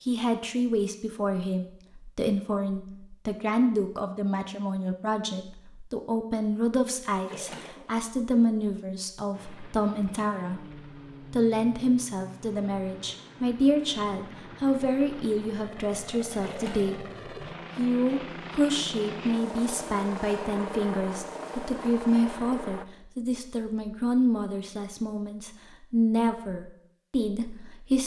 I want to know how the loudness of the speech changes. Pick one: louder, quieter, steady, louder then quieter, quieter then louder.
steady.